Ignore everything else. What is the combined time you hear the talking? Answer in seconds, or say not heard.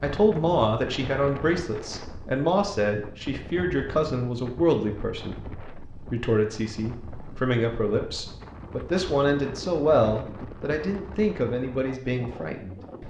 13 s.